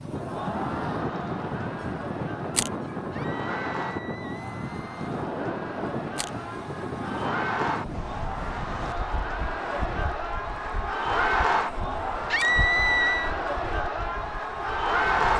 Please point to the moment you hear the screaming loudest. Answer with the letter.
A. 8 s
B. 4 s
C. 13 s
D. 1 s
C.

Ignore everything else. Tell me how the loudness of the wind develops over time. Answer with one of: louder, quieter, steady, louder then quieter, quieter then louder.
quieter.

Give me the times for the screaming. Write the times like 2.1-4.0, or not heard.
3.1-5.1, 12.3-13.3.